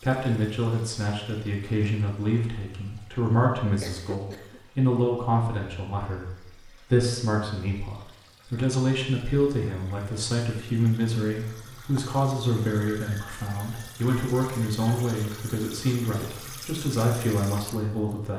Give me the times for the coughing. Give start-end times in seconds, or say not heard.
3.8-4.6.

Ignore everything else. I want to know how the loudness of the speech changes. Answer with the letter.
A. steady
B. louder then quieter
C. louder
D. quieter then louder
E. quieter
A.